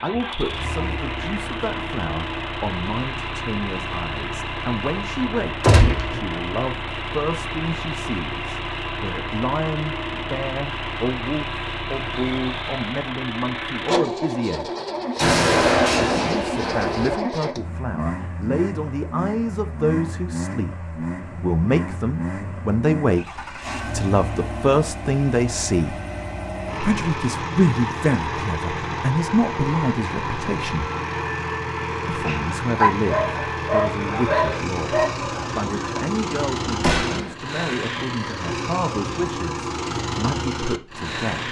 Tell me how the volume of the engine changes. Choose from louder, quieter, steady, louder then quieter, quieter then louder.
steady.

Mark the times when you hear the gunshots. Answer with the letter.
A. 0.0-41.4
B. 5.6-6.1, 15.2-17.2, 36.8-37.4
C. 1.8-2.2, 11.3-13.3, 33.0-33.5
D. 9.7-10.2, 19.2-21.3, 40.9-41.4
B.